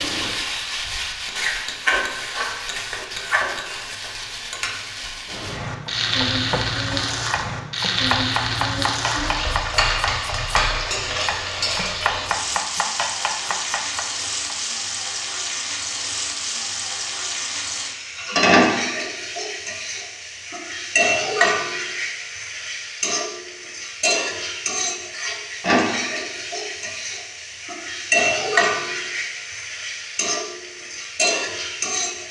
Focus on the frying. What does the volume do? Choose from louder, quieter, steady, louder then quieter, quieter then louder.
steady.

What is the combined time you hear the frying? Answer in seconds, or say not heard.
32 s.